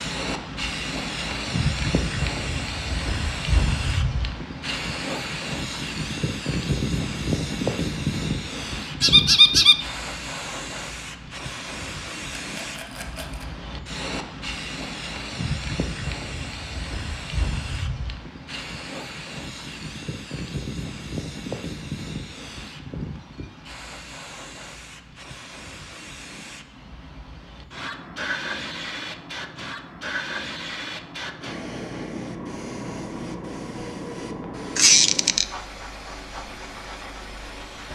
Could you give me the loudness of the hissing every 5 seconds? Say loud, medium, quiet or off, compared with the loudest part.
loud, loud, medium, medium, medium, medium, medium, medium.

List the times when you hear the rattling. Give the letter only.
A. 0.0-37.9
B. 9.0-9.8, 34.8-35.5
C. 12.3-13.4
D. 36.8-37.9
C.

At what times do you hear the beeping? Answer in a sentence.
The beeping can't be heard in this clip.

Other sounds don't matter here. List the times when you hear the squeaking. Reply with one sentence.
You can hear the squeaking from 9.0 to 9.8 s and from 34.8 to 35.5 s.